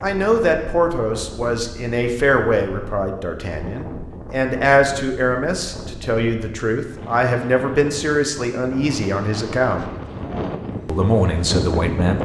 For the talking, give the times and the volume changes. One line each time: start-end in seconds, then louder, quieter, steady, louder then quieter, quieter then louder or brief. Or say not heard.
0.0-9.8 steady
10.8-12.2 brief.